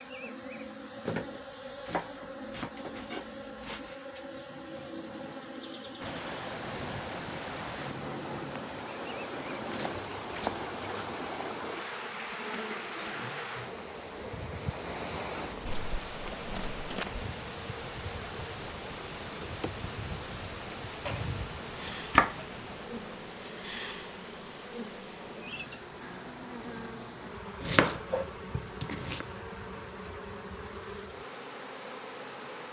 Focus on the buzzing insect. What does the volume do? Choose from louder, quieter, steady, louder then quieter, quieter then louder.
steady.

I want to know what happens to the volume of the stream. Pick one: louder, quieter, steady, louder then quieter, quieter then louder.
quieter.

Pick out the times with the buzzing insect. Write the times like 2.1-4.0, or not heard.
0.0-32.6.